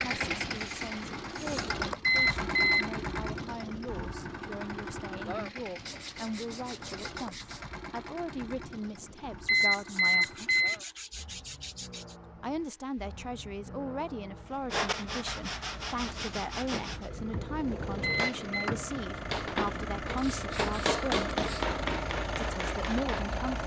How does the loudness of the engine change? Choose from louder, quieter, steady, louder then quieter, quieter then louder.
quieter then louder.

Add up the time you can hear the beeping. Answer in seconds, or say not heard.
3 s.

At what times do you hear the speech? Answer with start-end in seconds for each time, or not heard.
0.0-10.6, 12.4-21.3, 22.4-23.6.